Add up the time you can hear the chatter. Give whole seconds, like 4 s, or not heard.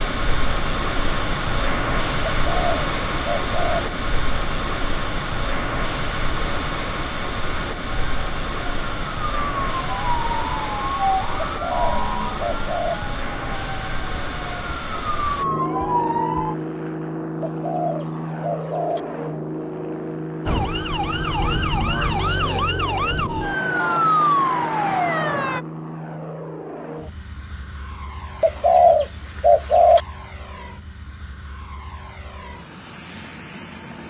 not heard.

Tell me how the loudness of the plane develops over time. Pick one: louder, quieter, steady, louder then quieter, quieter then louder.
quieter.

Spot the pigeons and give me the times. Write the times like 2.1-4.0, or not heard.
2.5-3.9, 11.4-13.0, 17.4-19.0, 28.4-30.0.